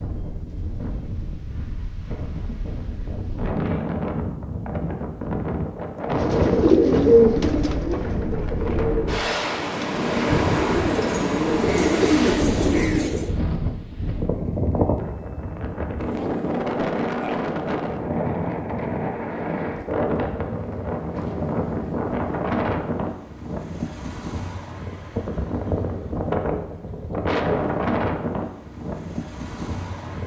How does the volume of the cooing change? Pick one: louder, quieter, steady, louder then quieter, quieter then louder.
quieter then louder.